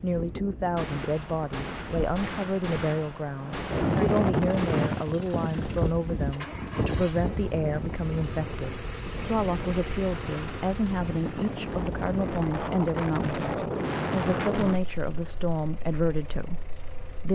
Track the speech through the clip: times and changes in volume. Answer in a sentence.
You can hear the speech from 0.0 to 17.2 s, at a steady volume.